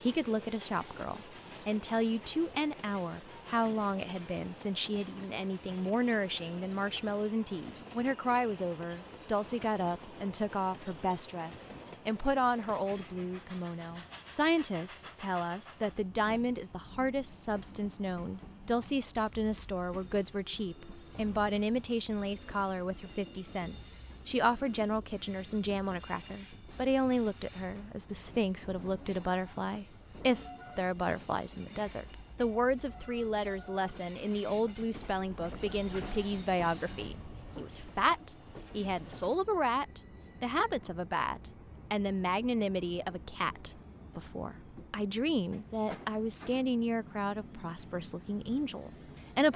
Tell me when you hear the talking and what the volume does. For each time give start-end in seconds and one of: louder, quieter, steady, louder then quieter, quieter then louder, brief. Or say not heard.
0.0-49.5 steady.